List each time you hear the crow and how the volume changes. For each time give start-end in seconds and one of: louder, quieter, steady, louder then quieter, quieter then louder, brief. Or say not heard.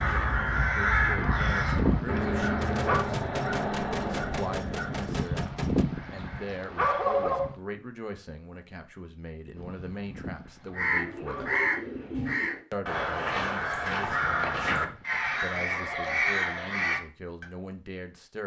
0.0-5.2 quieter
10.8-17.4 steady.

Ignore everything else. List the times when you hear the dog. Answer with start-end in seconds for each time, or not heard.
1.1-3.0, 5.0-7.5, 9.6-11.8, 14.0-16.2.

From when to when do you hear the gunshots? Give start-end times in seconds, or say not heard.
2.6-5.8.